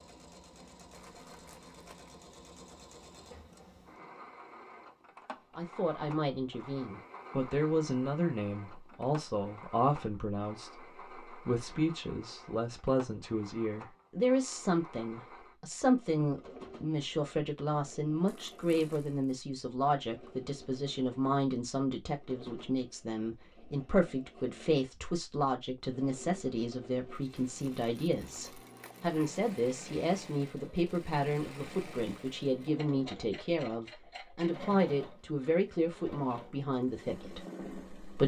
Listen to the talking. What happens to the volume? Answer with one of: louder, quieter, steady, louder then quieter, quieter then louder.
steady.